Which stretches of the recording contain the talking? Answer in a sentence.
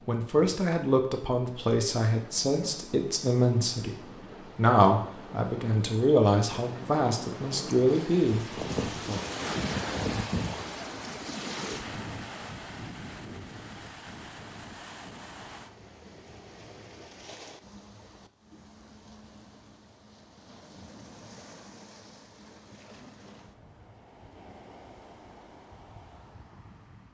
The talking can be heard from 0.1 to 9.2 s.